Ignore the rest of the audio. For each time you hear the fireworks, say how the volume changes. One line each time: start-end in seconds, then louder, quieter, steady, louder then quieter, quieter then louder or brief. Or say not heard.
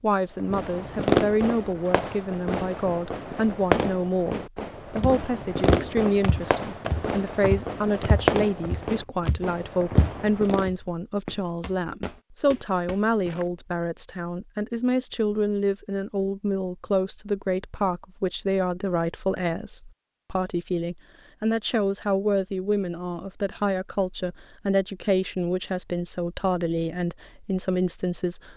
0.3-10.7 quieter.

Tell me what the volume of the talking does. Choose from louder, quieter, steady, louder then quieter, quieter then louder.
steady.